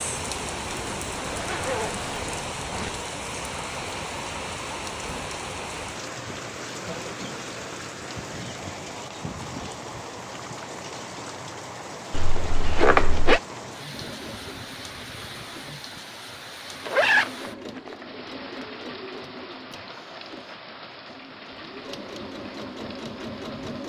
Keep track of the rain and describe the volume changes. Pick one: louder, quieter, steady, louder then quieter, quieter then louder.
quieter.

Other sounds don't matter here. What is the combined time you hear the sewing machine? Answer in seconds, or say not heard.
10 s.